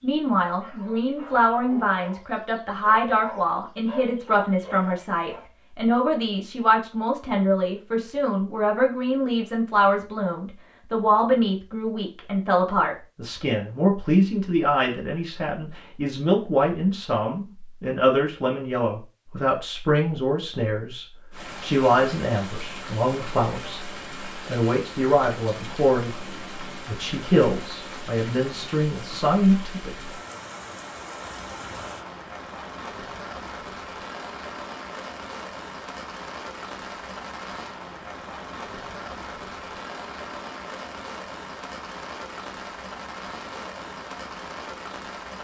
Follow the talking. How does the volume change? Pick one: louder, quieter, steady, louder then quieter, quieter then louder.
steady.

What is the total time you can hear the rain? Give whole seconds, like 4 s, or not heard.
24 s.